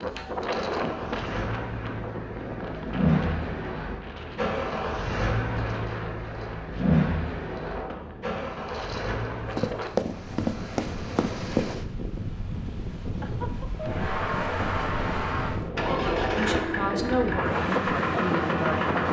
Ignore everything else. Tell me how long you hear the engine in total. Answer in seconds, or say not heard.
15 s.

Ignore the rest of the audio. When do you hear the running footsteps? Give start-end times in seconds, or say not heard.
9.5-11.7.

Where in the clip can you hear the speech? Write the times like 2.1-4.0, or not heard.
16.4-18.9.